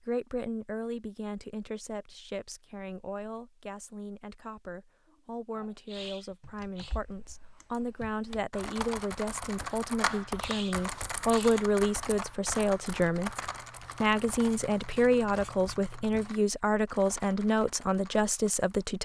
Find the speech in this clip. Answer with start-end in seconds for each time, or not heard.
0.1-13.4, 14.0-18.9.